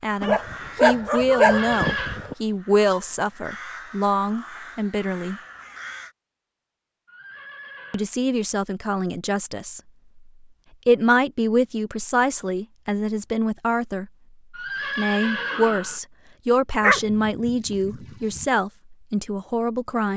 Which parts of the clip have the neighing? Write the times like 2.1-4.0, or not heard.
1.3-2.2, 7.0-8.1, 14.5-16.0.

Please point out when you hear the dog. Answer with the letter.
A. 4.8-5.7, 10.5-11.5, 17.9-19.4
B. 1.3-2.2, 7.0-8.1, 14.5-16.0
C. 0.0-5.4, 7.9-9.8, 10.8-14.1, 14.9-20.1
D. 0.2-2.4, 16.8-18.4
D.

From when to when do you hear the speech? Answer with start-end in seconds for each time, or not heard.
0.0-5.4, 7.9-9.8, 10.8-14.1, 14.9-20.1.